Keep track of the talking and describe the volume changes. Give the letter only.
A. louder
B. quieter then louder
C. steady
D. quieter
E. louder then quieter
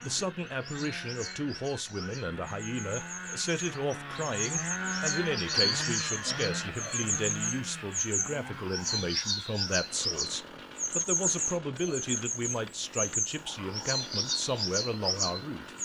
C.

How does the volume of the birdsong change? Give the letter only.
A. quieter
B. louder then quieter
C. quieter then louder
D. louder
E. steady
D.